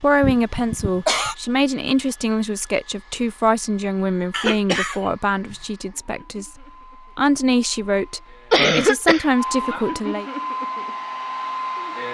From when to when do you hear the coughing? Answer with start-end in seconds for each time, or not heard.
0.2-1.4, 4.3-5.5, 8.5-9.3.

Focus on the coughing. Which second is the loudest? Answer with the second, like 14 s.
9 s.